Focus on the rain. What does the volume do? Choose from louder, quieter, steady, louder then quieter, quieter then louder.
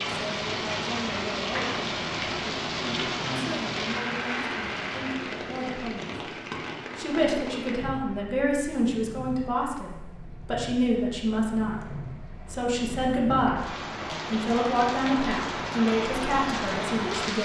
quieter then louder.